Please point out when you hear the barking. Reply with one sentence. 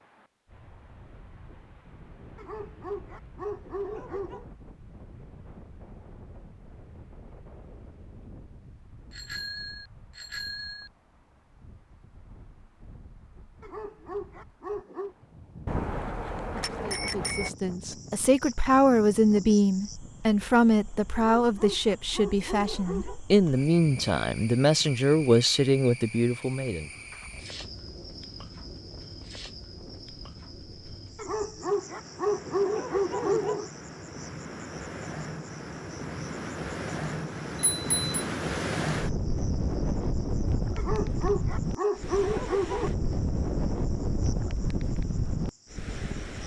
You can hear the barking from 2.4 to 4.5 s, from 13.6 to 15.2 s, from 21.4 to 23.2 s, from 31.1 to 33.7 s and from 40.8 to 42.9 s.